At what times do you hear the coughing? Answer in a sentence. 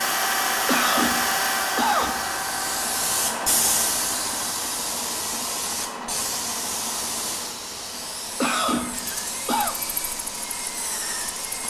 The coughing can be heard from 0.7 to 2.2 s and from 8.4 to 9.8 s.